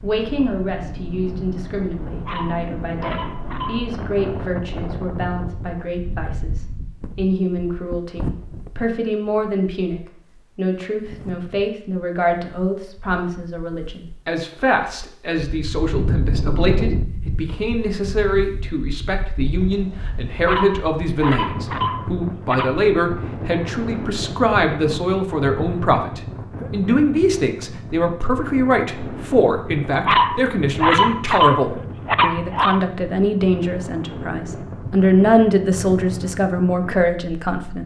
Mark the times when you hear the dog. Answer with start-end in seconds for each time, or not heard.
2.2-3.9, 20.4-22.8, 30.1-32.8.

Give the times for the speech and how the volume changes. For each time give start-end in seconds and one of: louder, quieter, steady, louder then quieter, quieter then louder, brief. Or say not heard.
0.0-37.8 louder.